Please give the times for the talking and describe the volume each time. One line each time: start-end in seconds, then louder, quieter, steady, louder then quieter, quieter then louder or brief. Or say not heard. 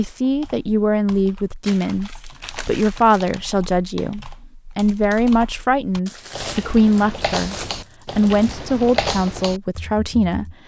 0.0-10.6 steady.